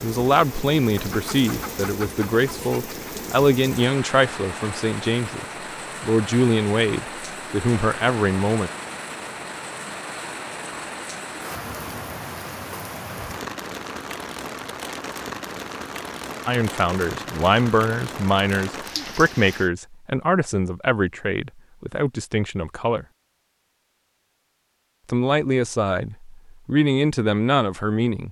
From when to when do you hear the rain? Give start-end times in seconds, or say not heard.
0.0-19.7.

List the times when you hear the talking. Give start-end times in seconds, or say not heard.
0.0-8.7, 16.4-23.1, 25.1-28.2.